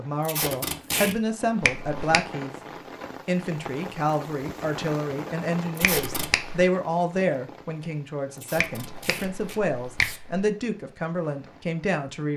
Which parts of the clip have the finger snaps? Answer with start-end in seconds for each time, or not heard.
1.6-2.2, 5.8-6.7, 8.6-10.4.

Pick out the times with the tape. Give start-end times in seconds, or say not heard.
0.2-1.1, 5.8-6.3, 8.3-10.2.